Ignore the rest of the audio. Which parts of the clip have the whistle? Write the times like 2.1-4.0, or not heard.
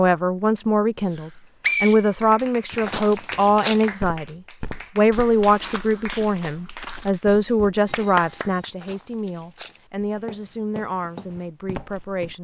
1.1-2.3.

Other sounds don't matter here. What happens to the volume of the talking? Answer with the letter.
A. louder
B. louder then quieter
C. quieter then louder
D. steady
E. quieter
E.